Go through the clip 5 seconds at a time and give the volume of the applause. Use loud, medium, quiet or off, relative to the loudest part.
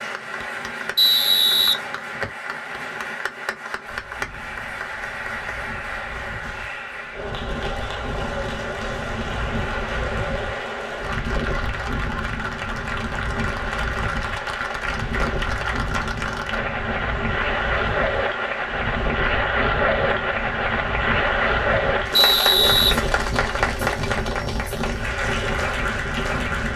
medium, medium, medium, loud, loud, loud.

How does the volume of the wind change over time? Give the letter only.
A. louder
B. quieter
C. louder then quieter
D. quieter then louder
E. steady
A.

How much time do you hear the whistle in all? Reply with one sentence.
You can hear the whistle for 3 seconds altogether.